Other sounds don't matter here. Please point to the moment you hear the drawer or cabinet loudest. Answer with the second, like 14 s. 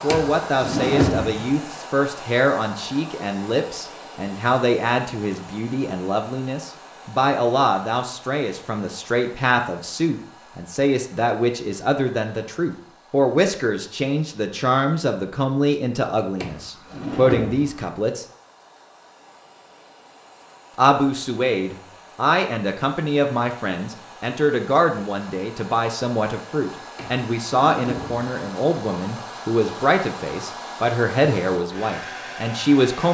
1 s.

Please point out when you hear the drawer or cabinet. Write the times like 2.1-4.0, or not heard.
0.1-1.5, 16.4-17.8, 26.9-28.3.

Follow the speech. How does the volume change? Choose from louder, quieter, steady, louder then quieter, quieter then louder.
steady.